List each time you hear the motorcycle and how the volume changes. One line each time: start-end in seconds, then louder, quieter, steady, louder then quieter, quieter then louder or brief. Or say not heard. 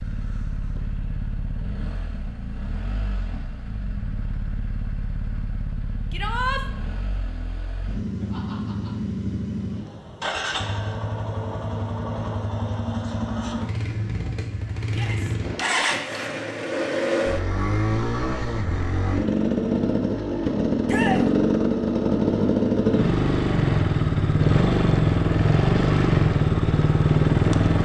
0.0-27.7 louder.